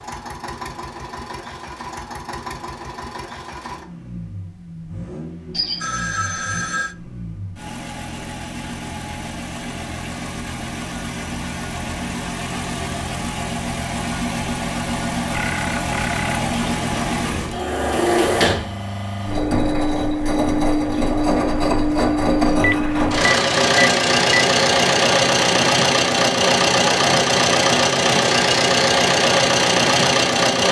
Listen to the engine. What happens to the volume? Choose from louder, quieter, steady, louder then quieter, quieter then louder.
louder.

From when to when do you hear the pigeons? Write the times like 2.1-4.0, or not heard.
not heard.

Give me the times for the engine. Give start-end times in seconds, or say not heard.
0.0-30.6.